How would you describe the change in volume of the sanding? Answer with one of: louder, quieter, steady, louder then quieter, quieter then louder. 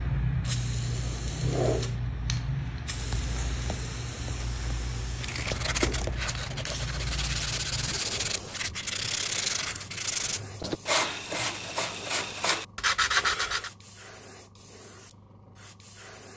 louder.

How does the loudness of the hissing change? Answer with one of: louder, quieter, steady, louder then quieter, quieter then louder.
quieter.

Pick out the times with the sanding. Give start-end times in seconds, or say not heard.
5.2-13.7.